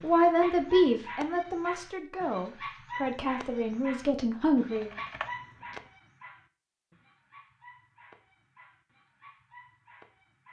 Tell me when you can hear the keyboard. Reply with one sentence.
You can hear the keyboard from 4.7 to 5.9 s.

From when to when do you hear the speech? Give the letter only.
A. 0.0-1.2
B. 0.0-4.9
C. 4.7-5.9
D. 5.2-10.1
B.